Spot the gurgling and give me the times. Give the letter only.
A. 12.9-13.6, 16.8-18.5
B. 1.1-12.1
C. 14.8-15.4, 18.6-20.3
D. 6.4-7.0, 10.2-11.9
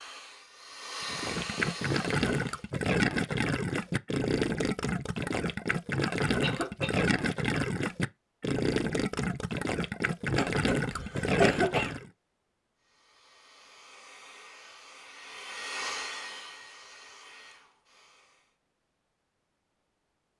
B.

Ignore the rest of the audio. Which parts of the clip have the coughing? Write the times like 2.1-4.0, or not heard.
6.4-7.0, 10.2-11.9.